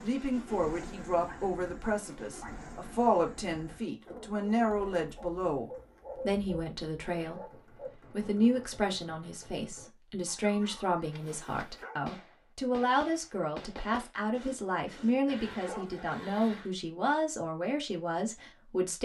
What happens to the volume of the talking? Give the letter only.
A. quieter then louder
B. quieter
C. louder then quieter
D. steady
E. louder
D.